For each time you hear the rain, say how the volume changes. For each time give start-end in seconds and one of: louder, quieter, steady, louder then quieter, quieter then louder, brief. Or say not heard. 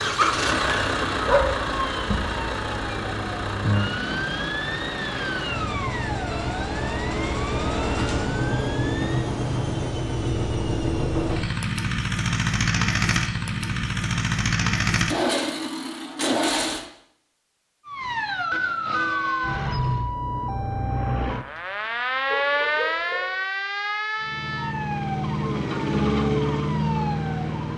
not heard.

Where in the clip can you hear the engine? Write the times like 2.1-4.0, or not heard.
0.0-16.9, 24.1-27.7.